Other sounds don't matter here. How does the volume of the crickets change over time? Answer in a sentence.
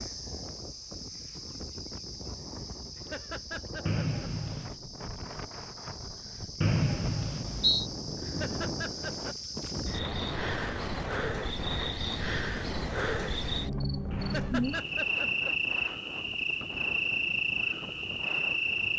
The volume of the crickets goes up.